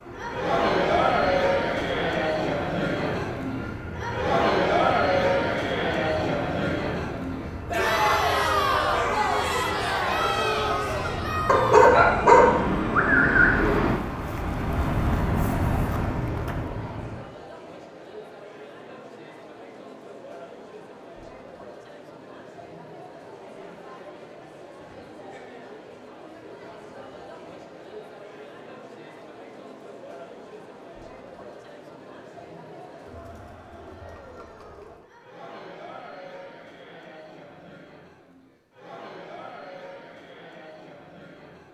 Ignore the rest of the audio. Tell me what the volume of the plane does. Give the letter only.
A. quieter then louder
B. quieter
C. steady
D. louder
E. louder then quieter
D.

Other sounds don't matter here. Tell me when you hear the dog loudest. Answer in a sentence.
The loudest moment of the dog is at 12 seconds.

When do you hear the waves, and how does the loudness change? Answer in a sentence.
You can't hear the waves here.